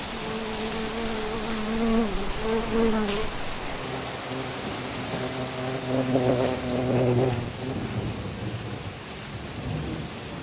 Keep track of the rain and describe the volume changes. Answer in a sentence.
The loudness of the rain stays about the same.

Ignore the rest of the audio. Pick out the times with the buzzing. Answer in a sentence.
You can hear the buzzing from 0.0 to 8.0 s.